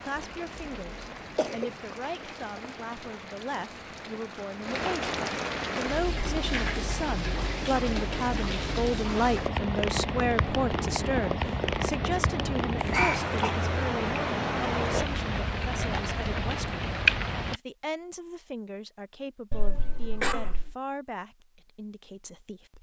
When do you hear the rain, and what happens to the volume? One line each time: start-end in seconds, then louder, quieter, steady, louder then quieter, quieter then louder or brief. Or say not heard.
0.0-17.6 louder.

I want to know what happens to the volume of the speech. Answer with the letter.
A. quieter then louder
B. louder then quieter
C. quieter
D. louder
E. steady
B.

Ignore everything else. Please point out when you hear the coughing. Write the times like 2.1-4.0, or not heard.
0.1-1.7, 12.8-13.5, 19.5-20.8.